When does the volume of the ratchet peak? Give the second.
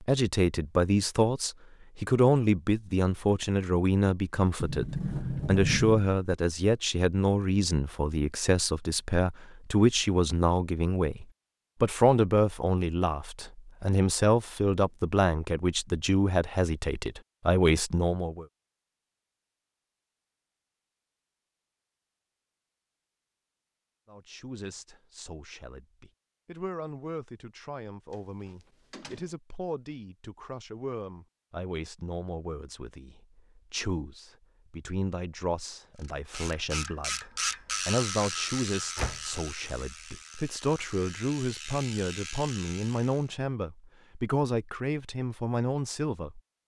38 s.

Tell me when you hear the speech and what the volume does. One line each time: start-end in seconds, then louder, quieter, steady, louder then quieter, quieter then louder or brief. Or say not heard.
0.0-18.4 steady
24.1-46.4 louder.